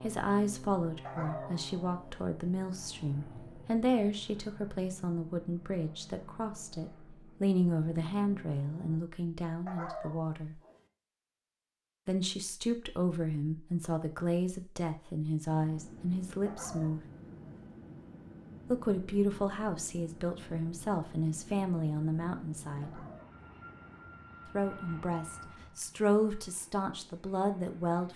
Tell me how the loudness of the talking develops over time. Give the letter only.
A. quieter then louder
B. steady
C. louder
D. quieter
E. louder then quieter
B.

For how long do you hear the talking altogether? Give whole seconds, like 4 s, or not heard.
23 s.